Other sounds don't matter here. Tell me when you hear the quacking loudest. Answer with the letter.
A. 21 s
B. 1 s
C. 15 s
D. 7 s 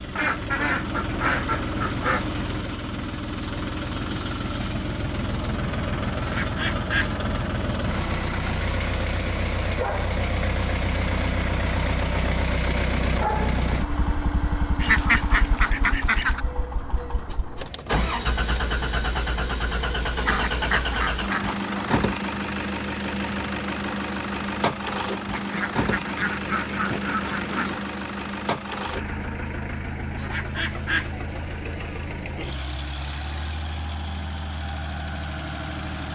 C.